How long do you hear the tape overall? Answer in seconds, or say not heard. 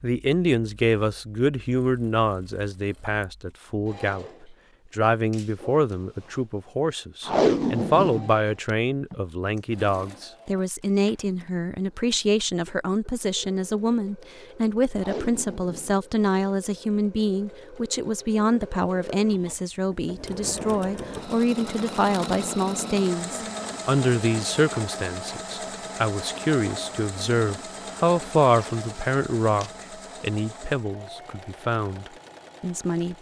4 s.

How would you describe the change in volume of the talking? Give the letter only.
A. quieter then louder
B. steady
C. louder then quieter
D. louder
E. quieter
B.